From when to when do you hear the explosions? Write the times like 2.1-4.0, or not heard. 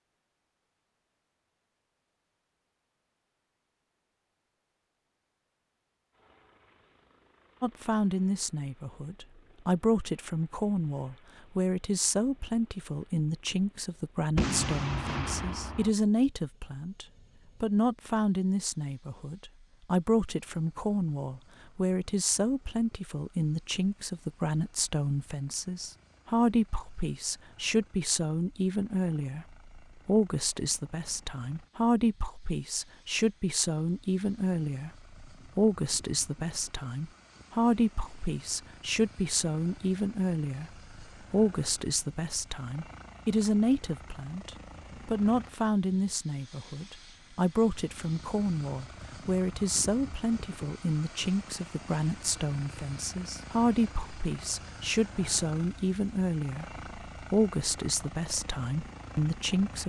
14.3-15.9.